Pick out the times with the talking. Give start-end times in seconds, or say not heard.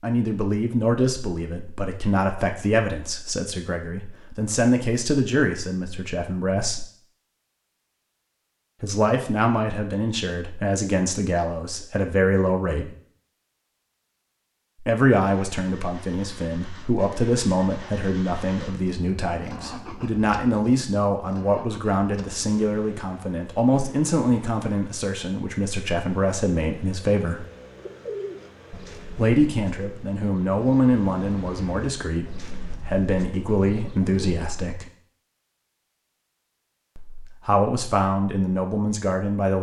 0.0-6.8, 8.8-12.9, 14.8-27.4, 29.1-34.9, 37.0-39.5.